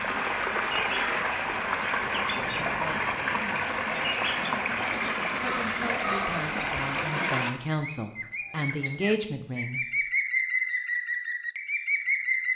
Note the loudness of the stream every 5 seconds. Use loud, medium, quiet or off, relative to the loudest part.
loud, loud, off.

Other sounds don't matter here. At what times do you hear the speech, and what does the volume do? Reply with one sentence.
You can hear the speech from 2.5 to 9.8 s, getting louder.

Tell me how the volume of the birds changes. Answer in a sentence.
The volume of the birds goes up.